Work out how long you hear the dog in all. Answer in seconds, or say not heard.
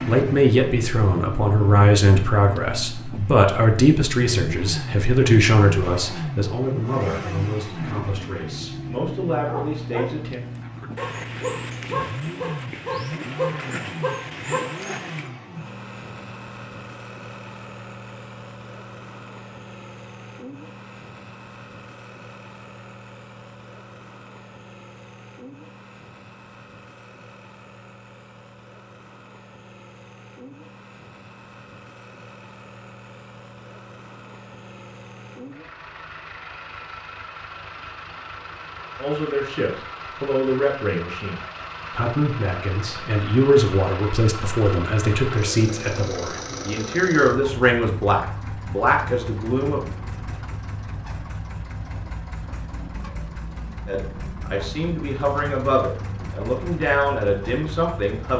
6 s.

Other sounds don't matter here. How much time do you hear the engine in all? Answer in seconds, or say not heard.
58 s.